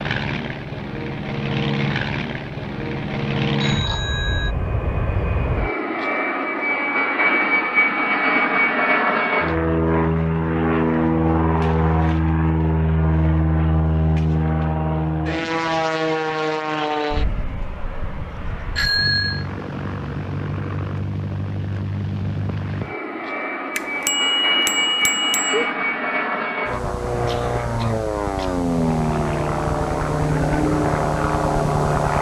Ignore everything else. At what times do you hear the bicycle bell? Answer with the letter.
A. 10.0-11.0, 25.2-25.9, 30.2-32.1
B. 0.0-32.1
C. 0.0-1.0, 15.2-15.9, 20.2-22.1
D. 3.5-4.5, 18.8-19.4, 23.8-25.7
D.